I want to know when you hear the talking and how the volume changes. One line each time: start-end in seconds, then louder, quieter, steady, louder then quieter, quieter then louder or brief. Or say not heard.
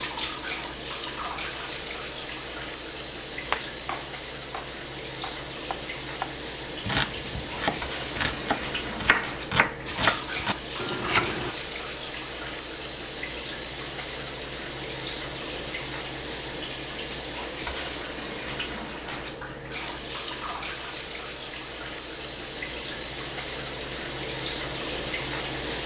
not heard.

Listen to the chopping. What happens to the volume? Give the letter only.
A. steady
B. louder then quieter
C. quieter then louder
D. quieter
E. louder
E.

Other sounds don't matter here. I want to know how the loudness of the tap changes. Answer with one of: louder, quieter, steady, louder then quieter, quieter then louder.
steady.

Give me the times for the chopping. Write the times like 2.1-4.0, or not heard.
3.5-11.5.